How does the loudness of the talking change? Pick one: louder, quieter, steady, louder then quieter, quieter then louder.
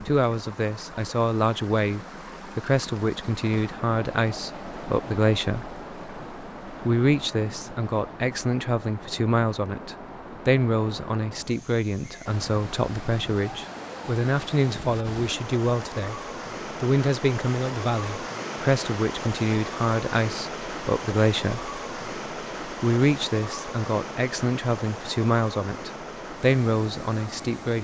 steady.